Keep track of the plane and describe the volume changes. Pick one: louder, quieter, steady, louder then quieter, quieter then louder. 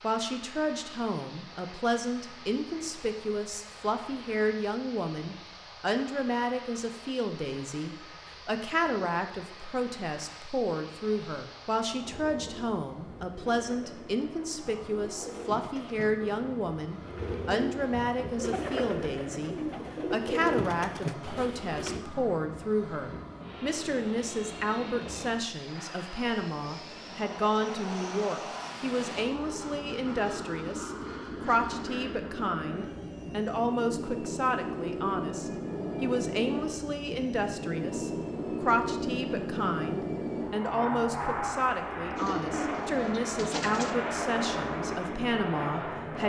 louder.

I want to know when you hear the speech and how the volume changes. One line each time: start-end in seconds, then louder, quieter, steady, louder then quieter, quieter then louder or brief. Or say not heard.
0.0-46.2 steady.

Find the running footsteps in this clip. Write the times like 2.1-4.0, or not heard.
not heard.